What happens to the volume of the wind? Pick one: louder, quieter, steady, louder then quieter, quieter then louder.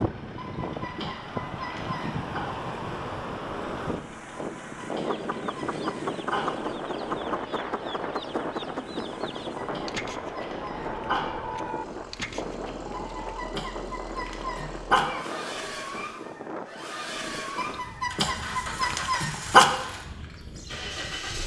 quieter.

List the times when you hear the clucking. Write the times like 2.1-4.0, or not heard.
5.0-13.4.